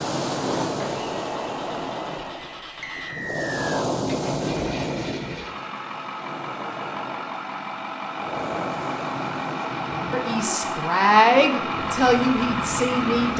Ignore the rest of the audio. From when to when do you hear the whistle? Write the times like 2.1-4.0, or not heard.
2.8-3.9.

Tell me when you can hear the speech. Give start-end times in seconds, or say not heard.
10.1-13.3.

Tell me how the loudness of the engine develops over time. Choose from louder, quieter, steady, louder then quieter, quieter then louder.
louder.